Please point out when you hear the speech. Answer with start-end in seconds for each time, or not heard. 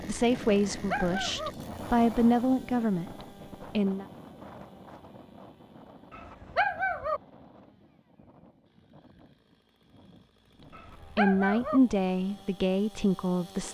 0.1-4.0, 11.2-13.6.